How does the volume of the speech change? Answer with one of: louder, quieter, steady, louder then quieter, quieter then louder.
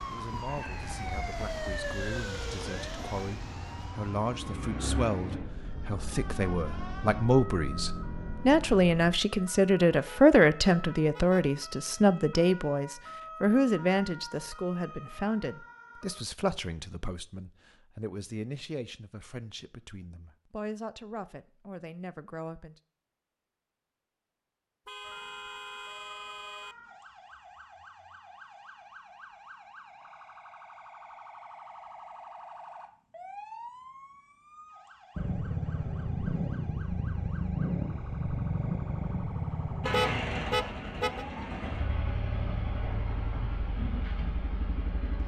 louder then quieter.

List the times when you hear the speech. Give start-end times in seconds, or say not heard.
0.1-22.8.